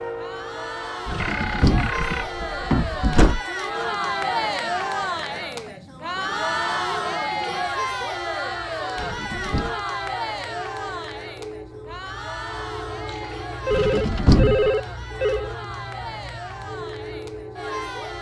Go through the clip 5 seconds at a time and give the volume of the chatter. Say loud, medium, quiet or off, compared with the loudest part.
loud, loud, medium, medium.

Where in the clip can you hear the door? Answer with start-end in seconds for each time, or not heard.
1.1-3.4, 8.9-9.8, 13.7-14.7.